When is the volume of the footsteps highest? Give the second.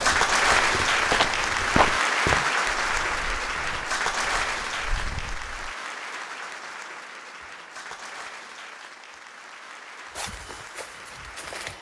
2 s.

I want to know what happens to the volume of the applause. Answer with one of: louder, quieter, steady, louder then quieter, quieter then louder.
quieter.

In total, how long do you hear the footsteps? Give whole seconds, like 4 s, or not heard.
7 s.